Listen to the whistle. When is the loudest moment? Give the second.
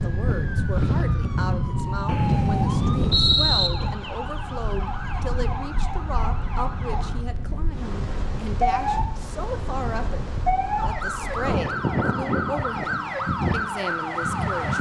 3 s.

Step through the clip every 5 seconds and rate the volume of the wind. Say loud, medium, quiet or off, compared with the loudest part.
loud, medium, loud.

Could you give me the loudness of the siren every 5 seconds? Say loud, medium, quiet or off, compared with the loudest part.
medium, loud, loud.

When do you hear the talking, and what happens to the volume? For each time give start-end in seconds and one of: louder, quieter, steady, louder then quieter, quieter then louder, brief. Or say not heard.
0.0-14.7 steady.